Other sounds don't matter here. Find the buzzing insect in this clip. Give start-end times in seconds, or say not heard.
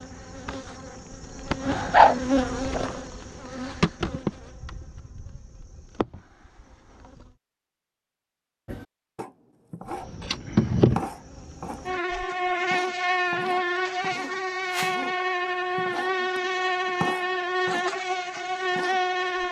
0.0-7.3, 9.9-19.4.